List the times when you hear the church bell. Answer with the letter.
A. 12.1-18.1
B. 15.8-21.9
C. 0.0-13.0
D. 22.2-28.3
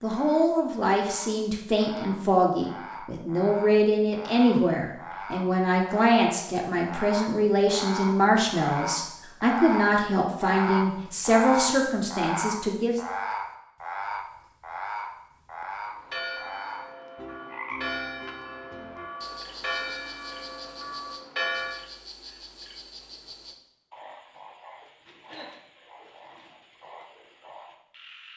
B.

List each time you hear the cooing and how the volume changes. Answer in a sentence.
The cooing can't be heard in this clip.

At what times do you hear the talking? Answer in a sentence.
You can hear the talking from 0.0 to 13.0 s.